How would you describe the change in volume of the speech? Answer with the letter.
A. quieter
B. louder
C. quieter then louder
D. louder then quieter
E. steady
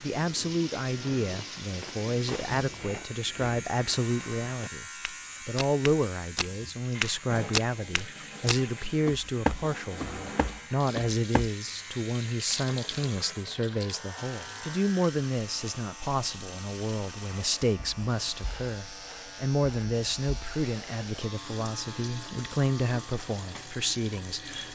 E.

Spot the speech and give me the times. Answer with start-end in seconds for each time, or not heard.
0.0-4.8, 5.5-24.6.